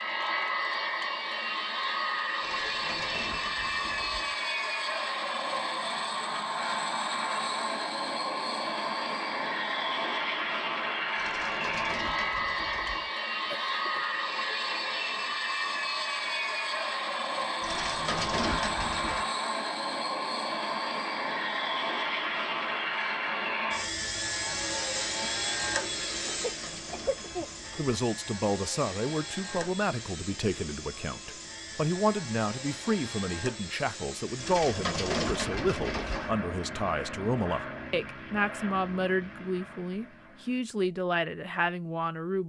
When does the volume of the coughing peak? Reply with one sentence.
The volume of the coughing peaks at 27 seconds.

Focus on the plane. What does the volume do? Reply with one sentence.
The volume of the plane goes down.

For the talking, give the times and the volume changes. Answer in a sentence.
You can hear the talking from 27.8 to 42.4 s, at a steady volume.